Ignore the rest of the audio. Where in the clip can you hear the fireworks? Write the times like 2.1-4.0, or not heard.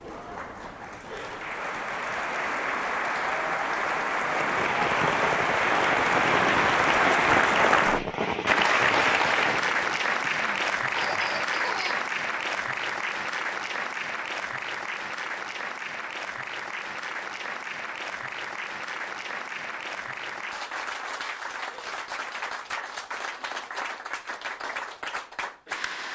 4.3-10.1.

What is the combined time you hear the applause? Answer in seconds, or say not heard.
26 s.